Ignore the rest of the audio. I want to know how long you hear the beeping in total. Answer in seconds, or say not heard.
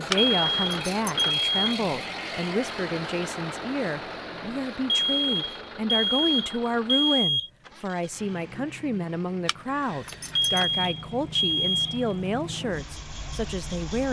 6 s.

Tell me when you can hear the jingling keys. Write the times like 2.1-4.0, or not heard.
0.1-1.3, 9.4-10.9.